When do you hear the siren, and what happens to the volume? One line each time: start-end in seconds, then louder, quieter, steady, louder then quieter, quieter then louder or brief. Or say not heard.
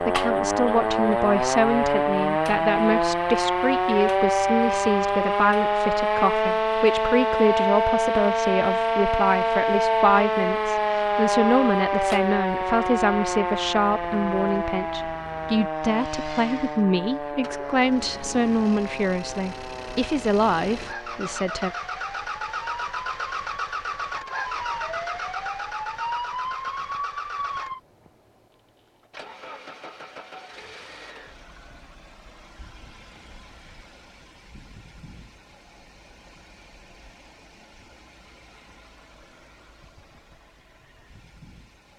0.0-27.8 quieter.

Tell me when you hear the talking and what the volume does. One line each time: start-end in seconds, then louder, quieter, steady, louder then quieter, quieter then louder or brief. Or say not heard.
0.0-21.7 steady.